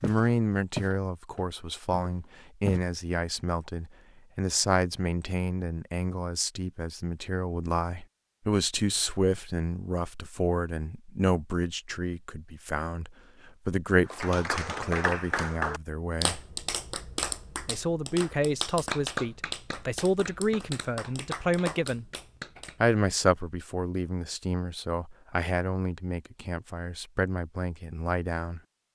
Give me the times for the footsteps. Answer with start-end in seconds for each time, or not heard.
0.0-2.9.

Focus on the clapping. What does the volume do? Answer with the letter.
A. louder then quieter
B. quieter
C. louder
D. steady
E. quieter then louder
B.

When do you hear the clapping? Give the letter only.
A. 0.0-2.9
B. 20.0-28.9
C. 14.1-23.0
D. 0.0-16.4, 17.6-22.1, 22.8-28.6
C.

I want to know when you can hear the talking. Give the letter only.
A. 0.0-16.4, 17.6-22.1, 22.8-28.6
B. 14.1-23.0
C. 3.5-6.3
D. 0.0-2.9
A.